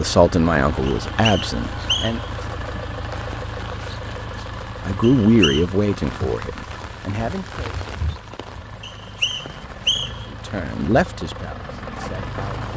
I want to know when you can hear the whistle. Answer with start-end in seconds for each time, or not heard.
0.8-2.3, 5.0-5.7, 8.8-10.2.